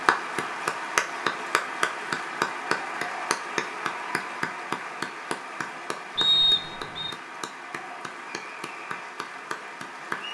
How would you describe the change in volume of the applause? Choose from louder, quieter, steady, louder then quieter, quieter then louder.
quieter.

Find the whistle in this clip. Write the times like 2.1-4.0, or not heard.
6.2-7.2.